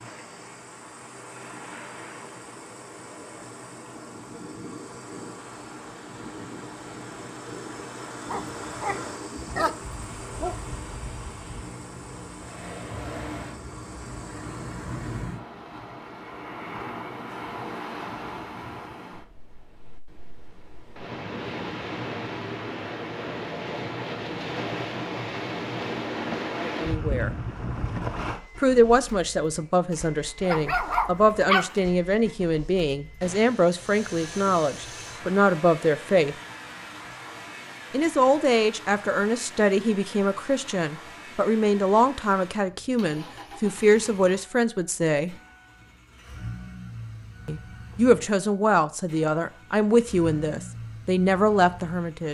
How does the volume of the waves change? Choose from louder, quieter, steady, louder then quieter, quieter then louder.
louder.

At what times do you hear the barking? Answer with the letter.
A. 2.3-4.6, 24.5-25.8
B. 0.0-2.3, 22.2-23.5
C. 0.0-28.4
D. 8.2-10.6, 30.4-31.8
D.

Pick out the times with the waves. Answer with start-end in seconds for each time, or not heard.
0.0-28.4.